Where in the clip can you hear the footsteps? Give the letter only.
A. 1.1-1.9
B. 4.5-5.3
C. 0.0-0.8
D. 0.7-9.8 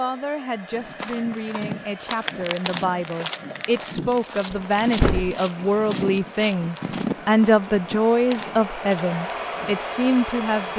D.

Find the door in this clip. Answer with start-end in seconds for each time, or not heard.
4.5-5.3.